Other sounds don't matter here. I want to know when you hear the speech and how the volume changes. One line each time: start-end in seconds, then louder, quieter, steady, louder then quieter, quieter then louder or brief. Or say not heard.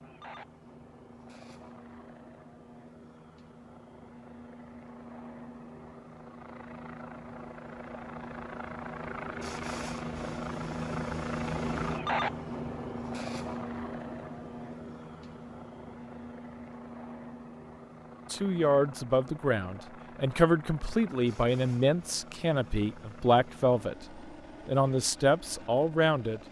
18.3-26.4 steady.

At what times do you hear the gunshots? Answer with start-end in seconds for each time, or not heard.
not heard.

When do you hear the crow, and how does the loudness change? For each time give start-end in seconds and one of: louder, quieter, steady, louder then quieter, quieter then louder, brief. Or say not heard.
not heard.